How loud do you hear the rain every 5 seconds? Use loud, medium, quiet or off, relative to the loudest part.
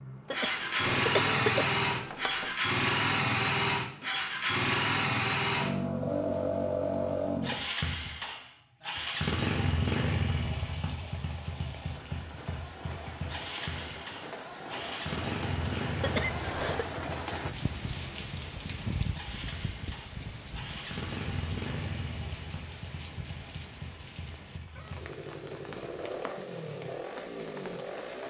off, off, medium, loud, medium, medium.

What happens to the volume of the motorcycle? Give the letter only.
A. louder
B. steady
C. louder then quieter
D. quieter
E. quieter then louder
D.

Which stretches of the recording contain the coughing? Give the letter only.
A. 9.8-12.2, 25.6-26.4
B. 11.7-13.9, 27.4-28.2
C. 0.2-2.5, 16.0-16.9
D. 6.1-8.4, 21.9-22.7
C.